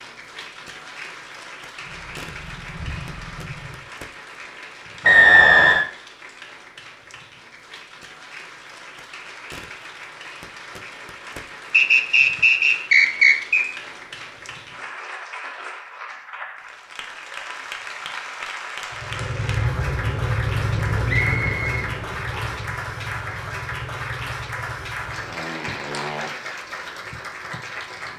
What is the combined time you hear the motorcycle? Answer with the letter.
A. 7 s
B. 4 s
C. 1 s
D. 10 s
D.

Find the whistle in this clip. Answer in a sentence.
You can hear the whistle from 5.0 to 5.8 s, from 11.7 to 13.7 s and from 21.1 to 22.4 s.